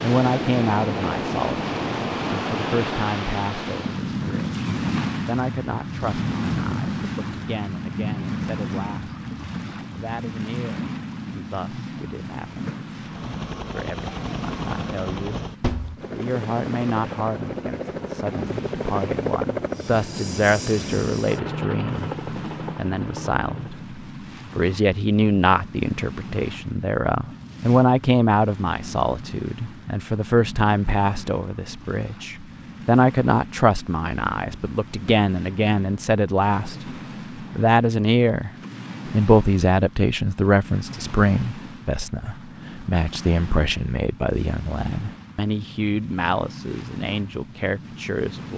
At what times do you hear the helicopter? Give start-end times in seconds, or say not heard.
12.9-23.9.